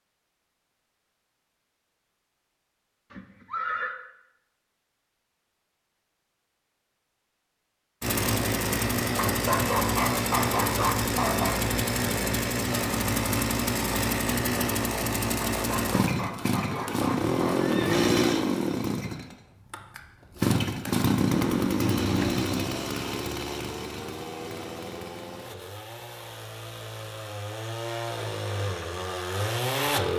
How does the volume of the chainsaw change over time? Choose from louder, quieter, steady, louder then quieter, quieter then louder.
quieter.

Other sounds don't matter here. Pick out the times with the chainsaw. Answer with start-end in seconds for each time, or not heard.
8.0-30.1.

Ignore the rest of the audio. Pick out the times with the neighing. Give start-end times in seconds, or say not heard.
3.1-4.0, 16.6-18.4, 21.8-22.7.